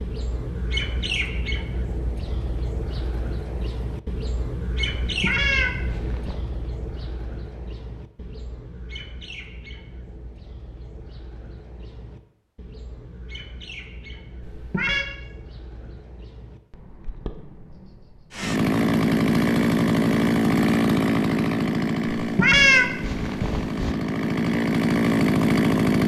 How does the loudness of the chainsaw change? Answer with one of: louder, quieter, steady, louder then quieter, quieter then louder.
quieter then louder.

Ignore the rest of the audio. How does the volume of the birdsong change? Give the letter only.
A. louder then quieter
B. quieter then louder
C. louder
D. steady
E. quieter
E.